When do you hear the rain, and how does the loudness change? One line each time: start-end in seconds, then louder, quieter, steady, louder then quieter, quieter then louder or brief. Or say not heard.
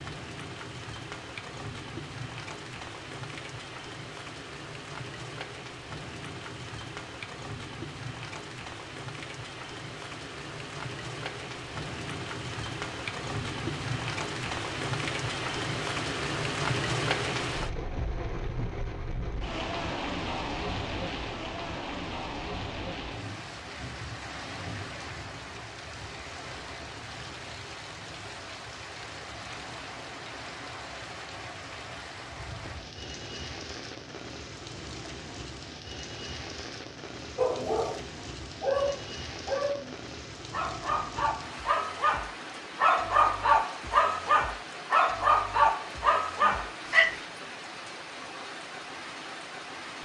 0.0-49.9 louder then quieter.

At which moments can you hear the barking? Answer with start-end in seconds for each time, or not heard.
37.4-47.2.